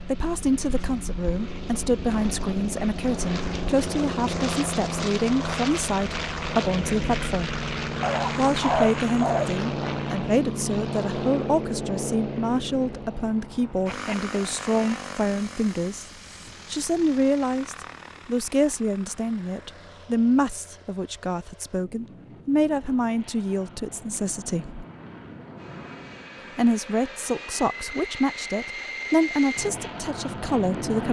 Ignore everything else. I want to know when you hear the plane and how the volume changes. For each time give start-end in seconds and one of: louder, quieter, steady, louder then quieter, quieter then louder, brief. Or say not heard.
0.0-31.0 quieter then louder.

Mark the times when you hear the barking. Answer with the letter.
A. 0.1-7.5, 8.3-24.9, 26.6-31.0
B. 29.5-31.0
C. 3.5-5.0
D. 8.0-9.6
D.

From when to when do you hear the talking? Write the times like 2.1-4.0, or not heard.
0.1-7.5, 8.3-24.9, 26.6-31.0.